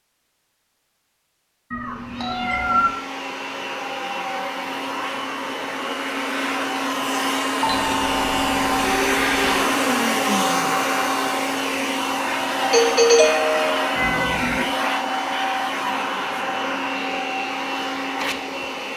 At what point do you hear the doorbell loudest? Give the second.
13 s.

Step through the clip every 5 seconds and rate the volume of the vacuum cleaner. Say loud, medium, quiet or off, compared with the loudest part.
medium, loud, loud, loud.